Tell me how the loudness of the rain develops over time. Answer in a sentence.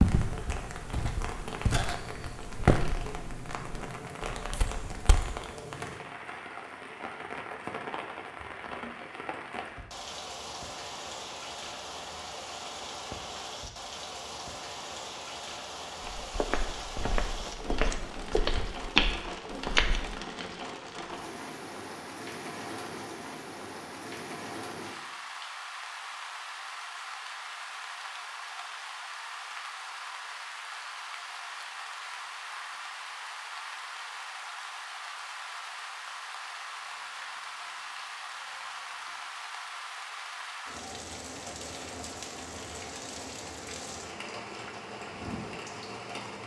The volume of the rain stays about the same.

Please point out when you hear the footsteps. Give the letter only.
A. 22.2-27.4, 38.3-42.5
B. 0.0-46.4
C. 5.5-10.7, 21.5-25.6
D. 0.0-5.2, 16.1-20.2
D.